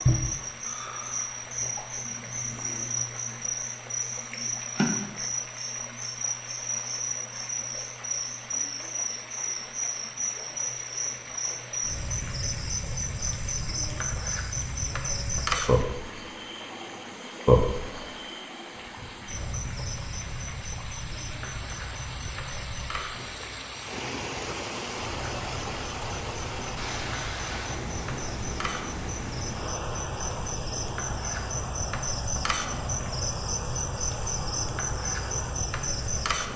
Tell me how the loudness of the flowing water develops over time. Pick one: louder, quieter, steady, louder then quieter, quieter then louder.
louder.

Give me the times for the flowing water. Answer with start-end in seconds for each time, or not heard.
0.0-36.5.